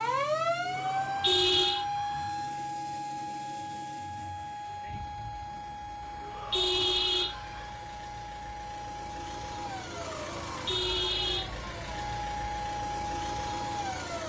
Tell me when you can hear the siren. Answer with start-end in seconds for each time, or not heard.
0.0-14.2.